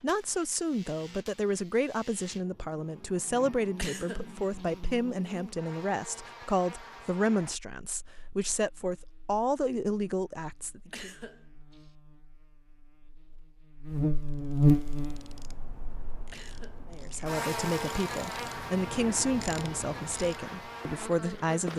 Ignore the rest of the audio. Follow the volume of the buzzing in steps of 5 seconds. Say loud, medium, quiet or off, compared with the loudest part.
quiet, quiet, loud, medium, medium.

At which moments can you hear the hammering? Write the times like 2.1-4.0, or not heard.
not heard.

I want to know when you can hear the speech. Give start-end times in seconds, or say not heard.
0.0-11.1, 16.9-21.7.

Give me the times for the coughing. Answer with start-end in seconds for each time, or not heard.
3.8-4.8, 10.9-11.9, 16.3-16.9.